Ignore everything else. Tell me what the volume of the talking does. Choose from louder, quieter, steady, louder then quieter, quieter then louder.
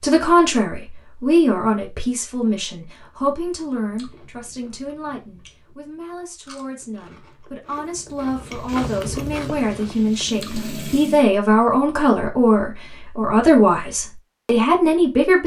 quieter then louder.